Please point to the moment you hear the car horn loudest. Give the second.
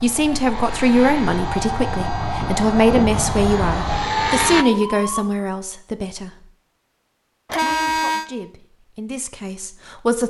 8 s.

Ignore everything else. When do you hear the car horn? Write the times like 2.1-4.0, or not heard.
0.5-3.0, 7.5-8.2.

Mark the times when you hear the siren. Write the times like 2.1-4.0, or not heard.
0.0-5.3.